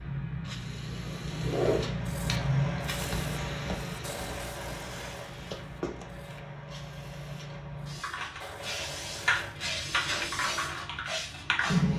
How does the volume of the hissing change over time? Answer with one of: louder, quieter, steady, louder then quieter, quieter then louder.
quieter then louder.